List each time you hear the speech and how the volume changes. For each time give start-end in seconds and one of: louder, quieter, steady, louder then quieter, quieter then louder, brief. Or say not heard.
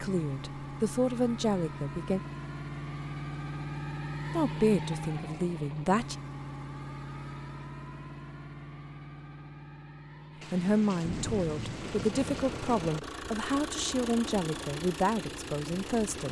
0.0-2.2 brief
4.3-6.2 brief
10.5-16.2 steady.